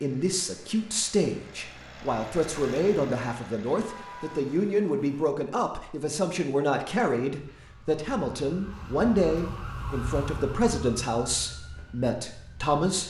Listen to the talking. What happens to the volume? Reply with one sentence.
The volume of the talking stays about the same.